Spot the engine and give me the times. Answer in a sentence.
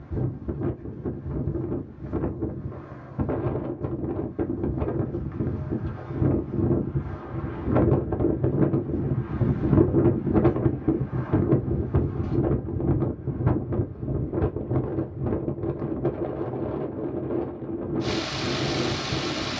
You can hear the engine from 18.0 to 19.5 s.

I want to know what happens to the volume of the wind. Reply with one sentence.
The volume of the wind goes up, then down.